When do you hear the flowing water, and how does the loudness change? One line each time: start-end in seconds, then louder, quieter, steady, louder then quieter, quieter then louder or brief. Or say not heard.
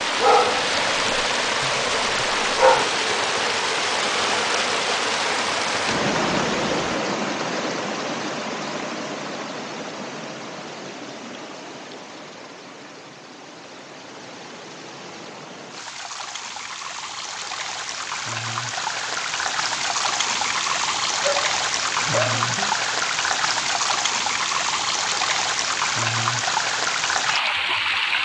0.0-28.2 quieter then louder.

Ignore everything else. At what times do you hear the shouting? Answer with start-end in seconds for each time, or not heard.
not heard.